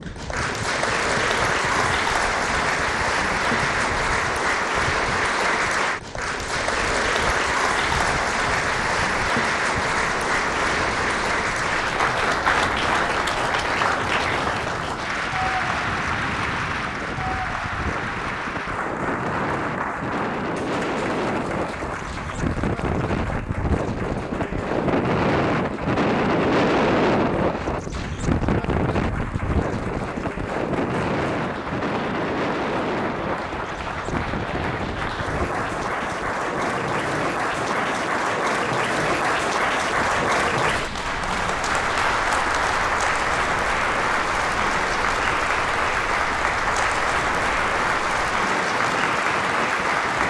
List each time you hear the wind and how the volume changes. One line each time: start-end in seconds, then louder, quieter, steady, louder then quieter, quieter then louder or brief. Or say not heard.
0.0-50.2 louder then quieter.